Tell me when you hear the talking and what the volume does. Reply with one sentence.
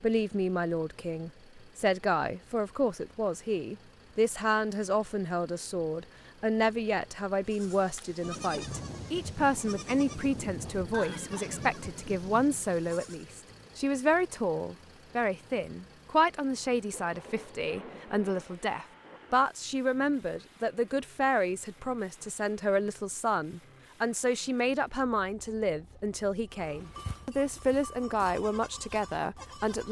The talking can be heard from 0.0 to 29.8 s, at a steady volume.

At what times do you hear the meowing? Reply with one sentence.
You can't hear the meowing here.